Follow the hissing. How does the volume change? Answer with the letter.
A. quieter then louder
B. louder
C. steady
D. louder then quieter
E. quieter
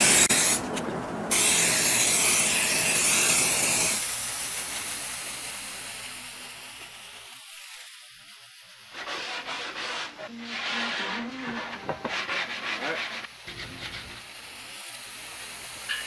A.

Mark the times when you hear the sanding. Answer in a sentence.
You can hear the sanding from 8.9 to 14.2 s.